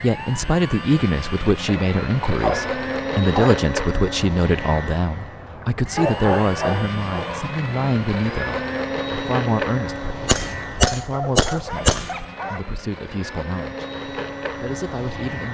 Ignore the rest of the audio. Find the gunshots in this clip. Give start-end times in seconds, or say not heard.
10.2-12.2.